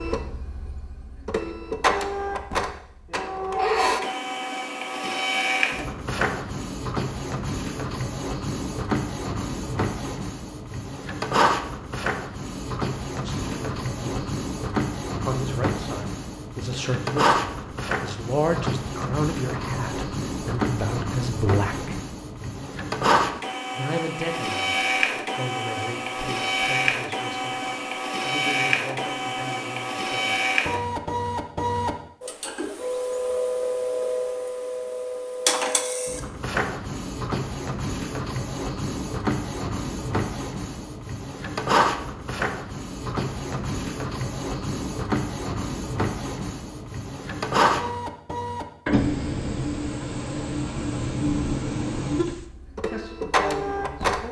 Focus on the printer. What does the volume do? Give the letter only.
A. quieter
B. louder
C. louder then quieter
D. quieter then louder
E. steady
E.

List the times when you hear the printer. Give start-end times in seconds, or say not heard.
0.0-54.2.